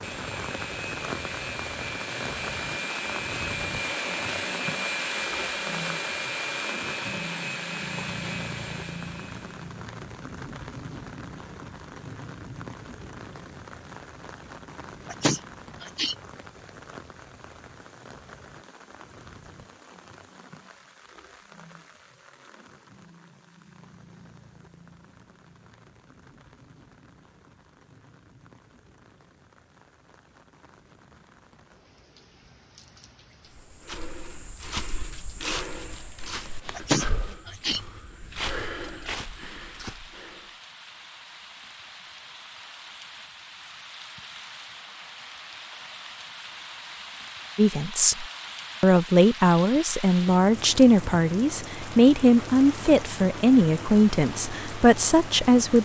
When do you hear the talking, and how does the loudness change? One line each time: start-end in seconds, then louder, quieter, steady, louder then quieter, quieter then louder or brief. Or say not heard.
47.5-55.7 steady.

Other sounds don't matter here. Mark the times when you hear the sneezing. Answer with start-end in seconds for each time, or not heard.
15.1-16.1, 36.8-37.8.